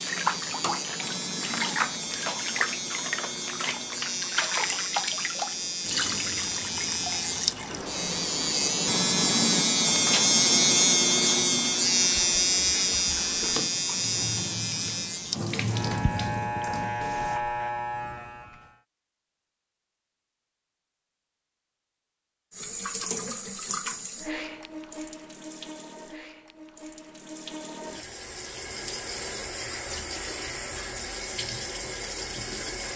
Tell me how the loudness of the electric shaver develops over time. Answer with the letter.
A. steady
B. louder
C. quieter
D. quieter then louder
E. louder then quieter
E.